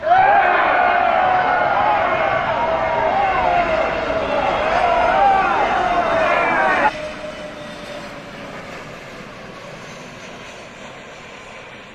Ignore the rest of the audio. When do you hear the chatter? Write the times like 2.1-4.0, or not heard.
0.0-6.9.